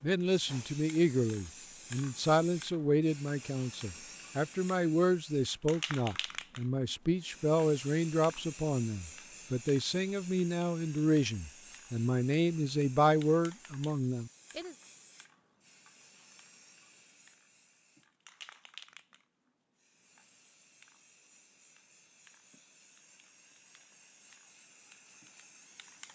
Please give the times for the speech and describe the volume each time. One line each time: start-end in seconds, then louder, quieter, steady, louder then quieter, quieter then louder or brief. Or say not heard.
0.0-14.8 steady.